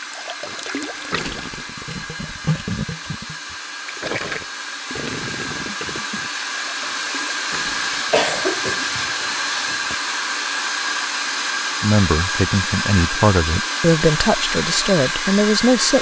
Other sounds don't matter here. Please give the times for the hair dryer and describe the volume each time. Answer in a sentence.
You can hear the hair dryer from 0.0 to 15.9 s, getting louder.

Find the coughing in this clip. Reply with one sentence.
The coughing can be heard from 8.1 to 9.9 s.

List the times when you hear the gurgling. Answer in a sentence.
You can hear the gurgling from 0.0 to 8.4 s.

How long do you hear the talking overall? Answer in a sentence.
The talking can be heard for 4 seconds in total.